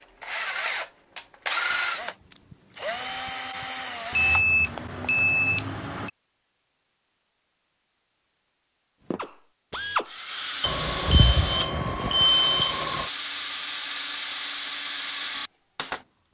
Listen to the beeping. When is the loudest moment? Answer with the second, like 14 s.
5 s.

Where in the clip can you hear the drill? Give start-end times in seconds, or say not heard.
0.0-4.5, 9.1-16.2.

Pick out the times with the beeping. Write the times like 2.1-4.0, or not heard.
4.2-6.1, 10.6-13.1.